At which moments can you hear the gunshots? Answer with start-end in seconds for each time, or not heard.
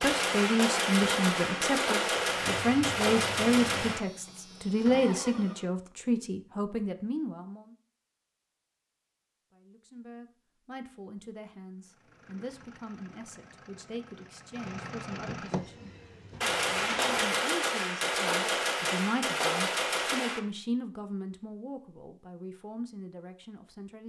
0.0-4.0, 16.4-20.4.